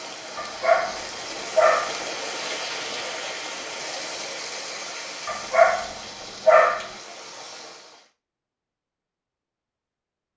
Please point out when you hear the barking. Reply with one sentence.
You can hear the barking from 0.3 to 2.0 s and from 5.2 to 6.9 s.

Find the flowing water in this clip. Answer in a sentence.
The flowing water can be heard from 0.0 to 8.1 s.